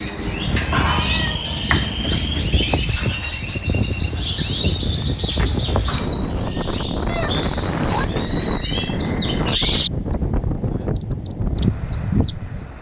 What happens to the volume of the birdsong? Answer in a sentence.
The loudness of the birdsong goes down.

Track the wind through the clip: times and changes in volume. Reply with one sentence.
The wind can be heard from 0.0 to 12.7 s, at a steady volume.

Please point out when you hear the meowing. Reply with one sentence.
The meowing can be heard from 0.2 to 1.4 s and from 7.0 to 8.1 s.